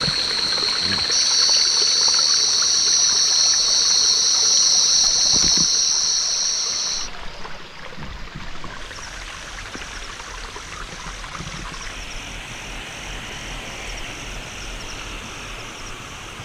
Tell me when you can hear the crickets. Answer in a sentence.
The crickets can be heard from 0.0 to 16.3 s.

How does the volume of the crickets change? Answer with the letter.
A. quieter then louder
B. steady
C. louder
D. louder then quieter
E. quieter
E.